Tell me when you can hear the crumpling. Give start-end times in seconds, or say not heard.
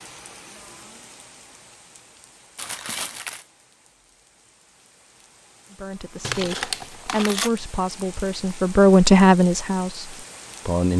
2.5-3.5, 6.2-7.5.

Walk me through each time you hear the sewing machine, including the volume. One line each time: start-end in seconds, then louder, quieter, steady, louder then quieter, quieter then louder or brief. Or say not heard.
not heard.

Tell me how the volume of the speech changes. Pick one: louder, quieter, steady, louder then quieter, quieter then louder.
louder then quieter.